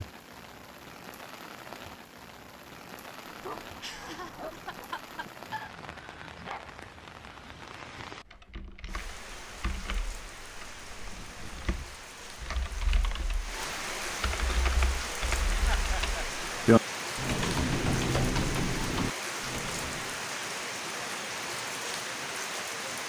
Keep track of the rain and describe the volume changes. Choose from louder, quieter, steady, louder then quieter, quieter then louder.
louder.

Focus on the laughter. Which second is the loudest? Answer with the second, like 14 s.
16 s.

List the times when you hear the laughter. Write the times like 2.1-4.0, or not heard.
3.8-5.7, 11.1-11.9, 15.7-16.2.